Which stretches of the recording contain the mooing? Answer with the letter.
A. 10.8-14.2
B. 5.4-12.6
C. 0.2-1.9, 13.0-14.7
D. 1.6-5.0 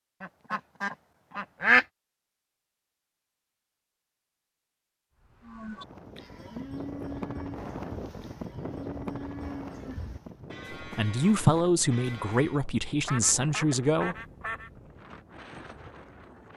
B.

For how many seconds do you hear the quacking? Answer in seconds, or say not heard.
3 s.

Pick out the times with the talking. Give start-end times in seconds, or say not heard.
10.8-14.2.